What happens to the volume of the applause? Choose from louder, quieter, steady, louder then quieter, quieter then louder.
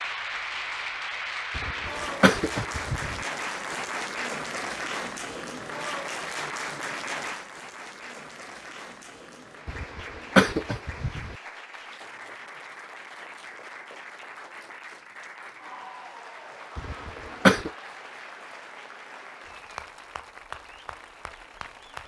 quieter.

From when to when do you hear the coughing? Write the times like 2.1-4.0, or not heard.
1.6-3.2, 9.7-11.3, 16.8-17.7.